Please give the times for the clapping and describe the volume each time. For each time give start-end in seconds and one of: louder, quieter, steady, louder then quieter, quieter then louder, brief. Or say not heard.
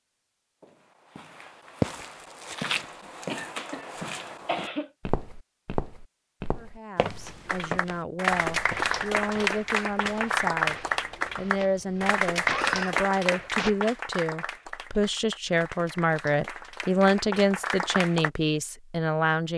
7.5-18.3 quieter.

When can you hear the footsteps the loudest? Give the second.
2 s.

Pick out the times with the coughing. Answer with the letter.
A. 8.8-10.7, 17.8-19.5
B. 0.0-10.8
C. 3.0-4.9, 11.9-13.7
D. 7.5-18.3
C.